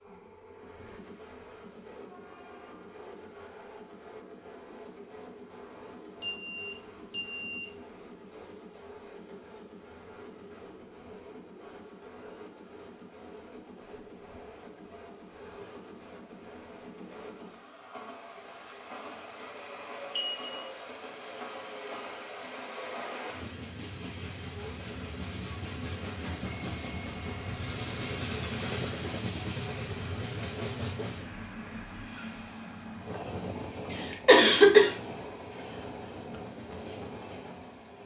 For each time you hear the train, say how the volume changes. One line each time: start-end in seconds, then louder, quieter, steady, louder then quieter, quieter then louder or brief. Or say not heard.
0.0-38.0 louder.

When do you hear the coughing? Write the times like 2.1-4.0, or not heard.
33.9-34.9.